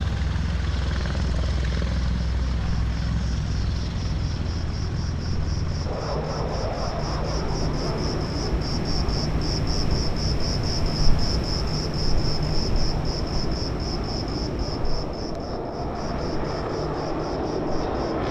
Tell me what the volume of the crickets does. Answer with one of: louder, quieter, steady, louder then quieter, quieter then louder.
louder then quieter.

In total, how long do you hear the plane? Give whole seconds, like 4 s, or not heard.
18 s.